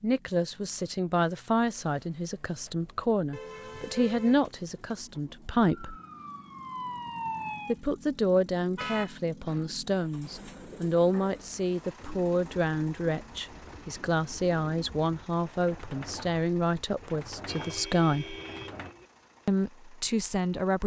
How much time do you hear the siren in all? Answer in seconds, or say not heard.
2 s.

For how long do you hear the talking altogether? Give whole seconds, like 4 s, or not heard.
18 s.